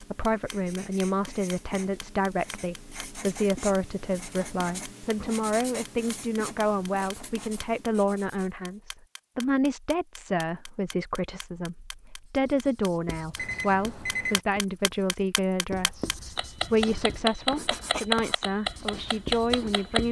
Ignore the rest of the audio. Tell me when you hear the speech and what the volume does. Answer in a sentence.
You can hear the speech from 0.0 to 20.0 s, at a steady volume.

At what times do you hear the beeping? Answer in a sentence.
You can hear the beeping from 13.3 to 14.4 s.